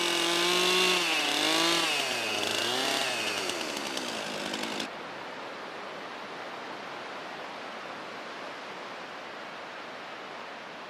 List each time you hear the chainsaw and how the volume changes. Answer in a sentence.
The chainsaw can be heard from 0.0 to 4.9 s, getting quieter.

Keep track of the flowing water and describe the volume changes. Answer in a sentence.
The loudness of the flowing water stays about the same.